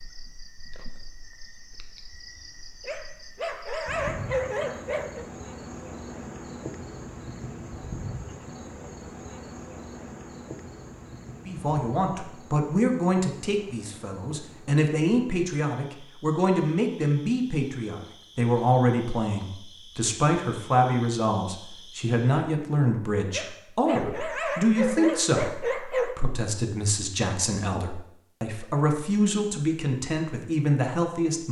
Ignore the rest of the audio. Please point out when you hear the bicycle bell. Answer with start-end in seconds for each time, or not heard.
not heard.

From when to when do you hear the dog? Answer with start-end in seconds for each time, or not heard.
2.9-5.2, 23.3-26.2.